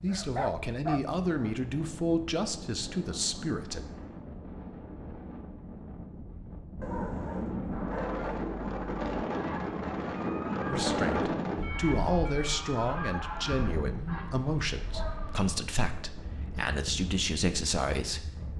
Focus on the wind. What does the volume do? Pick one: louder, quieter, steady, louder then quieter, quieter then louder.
louder then quieter.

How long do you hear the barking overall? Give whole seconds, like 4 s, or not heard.
4 s.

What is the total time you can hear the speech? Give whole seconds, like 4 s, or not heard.
12 s.